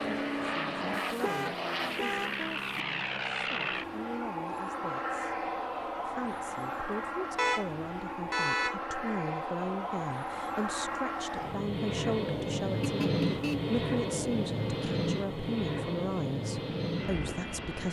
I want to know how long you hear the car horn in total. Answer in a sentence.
The car horn can be heard for 4 seconds in total.